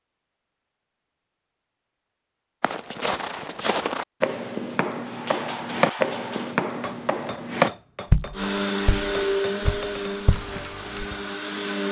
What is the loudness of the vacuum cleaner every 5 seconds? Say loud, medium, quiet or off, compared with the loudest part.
off, loud, medium.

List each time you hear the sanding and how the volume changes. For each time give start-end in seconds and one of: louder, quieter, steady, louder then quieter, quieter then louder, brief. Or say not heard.
not heard.